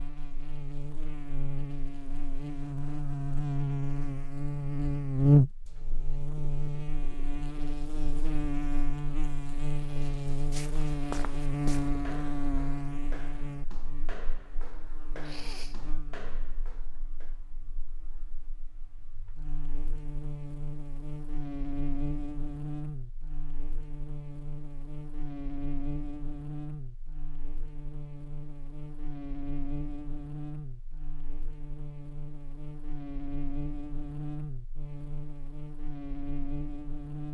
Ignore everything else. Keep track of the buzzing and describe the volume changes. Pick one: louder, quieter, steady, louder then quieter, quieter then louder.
quieter.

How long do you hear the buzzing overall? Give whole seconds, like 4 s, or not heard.
37 s.